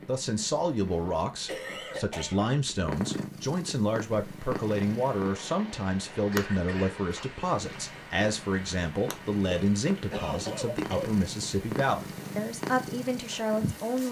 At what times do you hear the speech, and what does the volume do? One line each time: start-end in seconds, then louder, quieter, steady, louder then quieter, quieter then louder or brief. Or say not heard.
0.1-14.0 steady.